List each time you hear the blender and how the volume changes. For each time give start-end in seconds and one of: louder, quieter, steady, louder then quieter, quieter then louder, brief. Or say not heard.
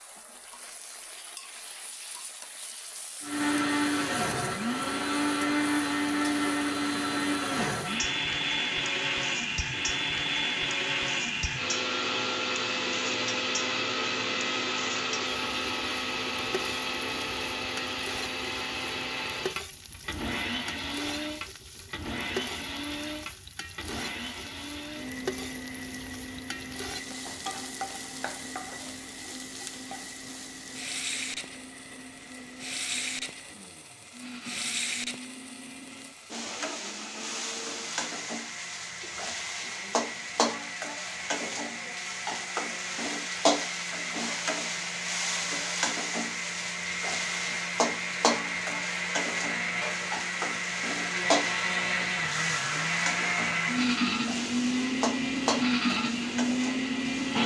3.2-57.4 quieter then louder.